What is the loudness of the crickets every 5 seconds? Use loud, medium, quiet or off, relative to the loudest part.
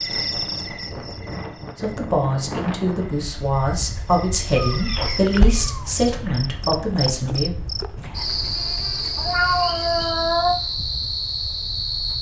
medium, loud, loud.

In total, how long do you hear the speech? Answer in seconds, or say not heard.
6 s.